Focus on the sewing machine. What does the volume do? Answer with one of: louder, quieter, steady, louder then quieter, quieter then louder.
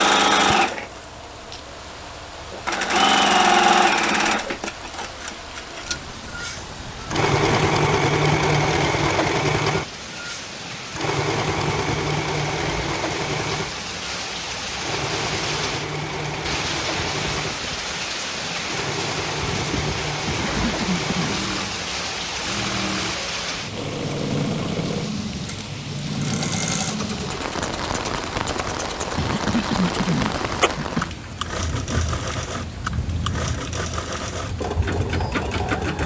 quieter.